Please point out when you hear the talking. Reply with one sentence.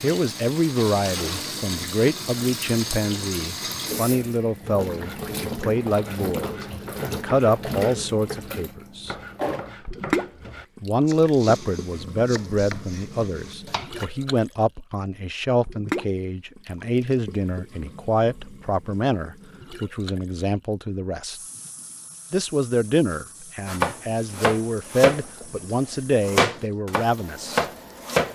You can hear the talking from 0.0 to 9.2 s, from 10.8 to 21.4 s and from 22.3 to 27.6 s.